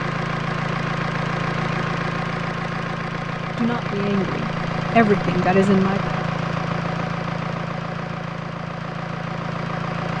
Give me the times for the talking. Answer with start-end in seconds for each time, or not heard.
3.5-6.2.